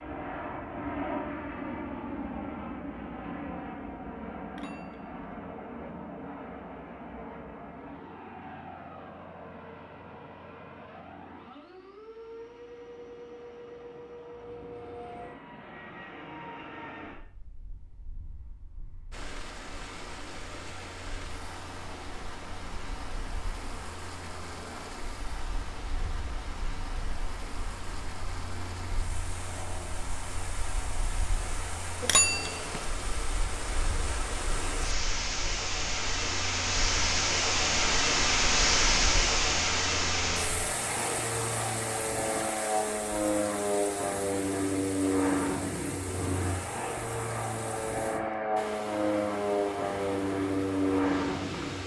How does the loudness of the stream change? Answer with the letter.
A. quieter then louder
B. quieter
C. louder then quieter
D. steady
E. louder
C.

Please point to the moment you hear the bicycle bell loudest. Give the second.
32 s.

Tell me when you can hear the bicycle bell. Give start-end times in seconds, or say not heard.
4.5-5.1, 32.0-32.9.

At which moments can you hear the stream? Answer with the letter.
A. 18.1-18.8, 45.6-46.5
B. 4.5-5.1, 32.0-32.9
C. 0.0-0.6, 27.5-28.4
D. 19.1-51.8
D.